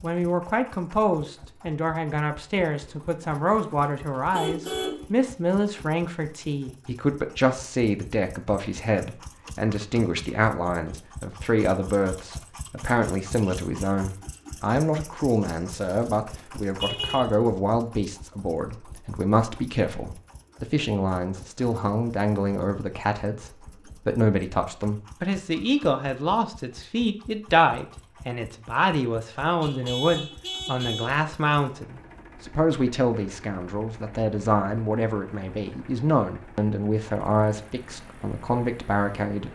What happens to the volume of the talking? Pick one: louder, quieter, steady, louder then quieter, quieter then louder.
steady.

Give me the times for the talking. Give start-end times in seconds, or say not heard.
0.0-39.5.